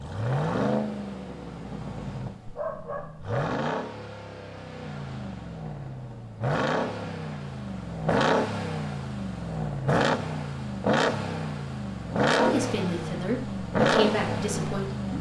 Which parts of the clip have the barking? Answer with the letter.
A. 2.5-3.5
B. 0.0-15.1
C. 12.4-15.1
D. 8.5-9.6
A.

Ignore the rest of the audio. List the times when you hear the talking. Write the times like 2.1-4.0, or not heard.
12.4-15.1.